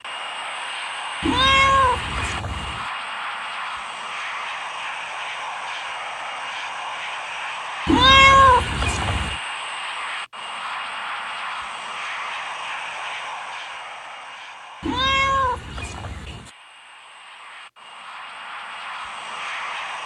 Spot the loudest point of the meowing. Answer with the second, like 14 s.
8 s.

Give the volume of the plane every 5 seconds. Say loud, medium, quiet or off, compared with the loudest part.
loud, loud, loud, medium.